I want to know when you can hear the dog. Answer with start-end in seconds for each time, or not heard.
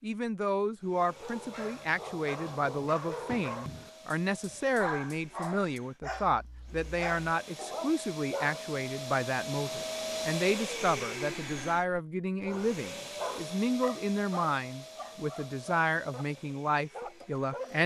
0.9-8.7, 12.4-17.8.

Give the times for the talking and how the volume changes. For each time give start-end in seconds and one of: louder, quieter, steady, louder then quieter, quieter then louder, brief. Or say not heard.
0.0-17.8 steady.